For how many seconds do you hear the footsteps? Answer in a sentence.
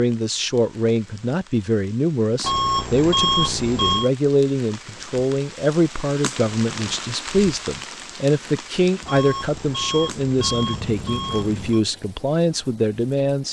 You can't hear the footsteps here.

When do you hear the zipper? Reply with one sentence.
The zipper can't be heard in this clip.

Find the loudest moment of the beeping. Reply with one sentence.
The loudest moment of the beeping is at 3 seconds.